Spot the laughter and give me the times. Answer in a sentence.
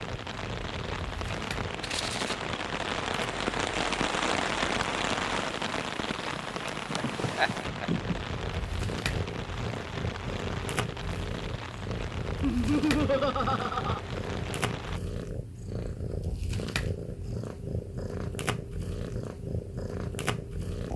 The laughter can be heard from 6.9 to 8.2 s and from 12.4 to 14.0 s.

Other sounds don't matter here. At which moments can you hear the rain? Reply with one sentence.
The rain can be heard from 0.0 to 15.0 s.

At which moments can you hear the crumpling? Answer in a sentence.
You can hear the crumpling from 1.8 to 2.4 s.